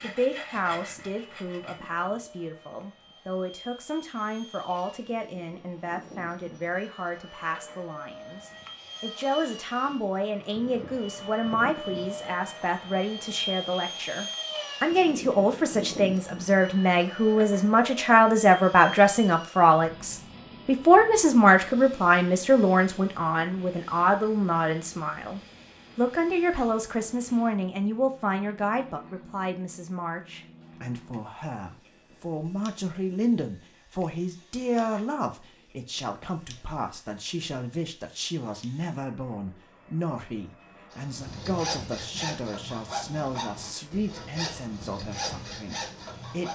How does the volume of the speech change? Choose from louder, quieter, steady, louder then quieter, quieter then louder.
louder then quieter.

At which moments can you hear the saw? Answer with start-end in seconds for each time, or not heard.
0.0-2.1, 41.0-46.4.